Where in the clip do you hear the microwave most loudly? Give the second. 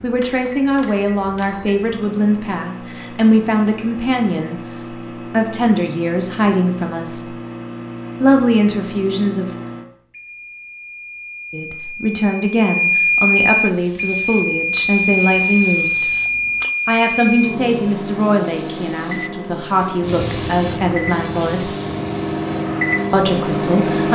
13 s.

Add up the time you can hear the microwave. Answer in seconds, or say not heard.
24 s.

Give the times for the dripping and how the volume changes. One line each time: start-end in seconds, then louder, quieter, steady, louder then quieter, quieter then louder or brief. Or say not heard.
not heard.